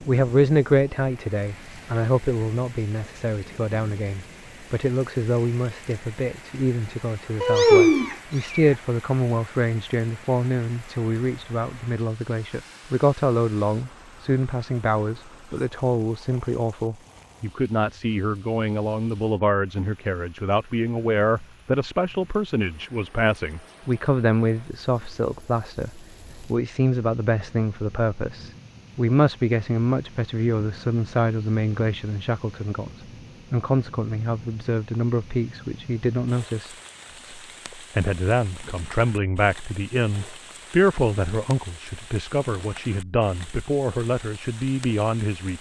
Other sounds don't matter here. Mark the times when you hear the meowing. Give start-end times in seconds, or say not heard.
7.4-8.7.